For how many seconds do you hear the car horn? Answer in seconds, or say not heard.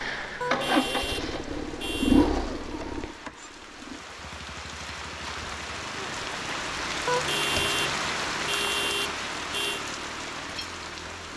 5 s.